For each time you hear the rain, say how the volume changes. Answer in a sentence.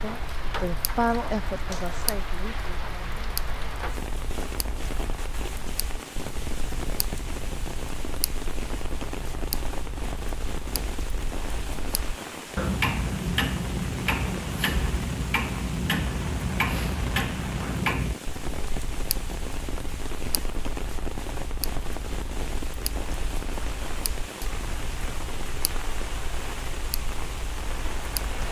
You can hear the rain from 0.0 to 28.4 s, at a steady volume.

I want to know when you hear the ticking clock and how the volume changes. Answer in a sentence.
You can hear the ticking clock from 0.0 to 28.4 s, getting louder then quieter.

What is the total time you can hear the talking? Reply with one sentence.
The talking can be heard for 3 seconds in total.